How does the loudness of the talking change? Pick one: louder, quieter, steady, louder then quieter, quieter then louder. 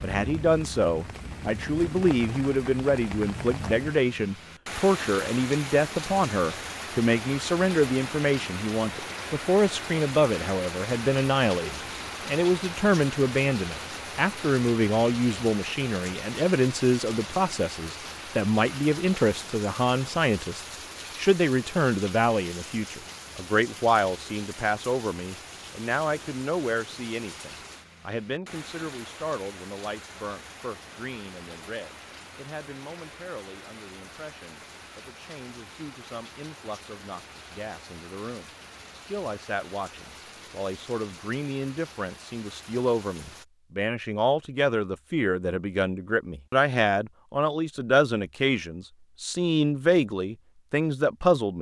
quieter then louder.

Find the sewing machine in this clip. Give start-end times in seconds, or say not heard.
not heard.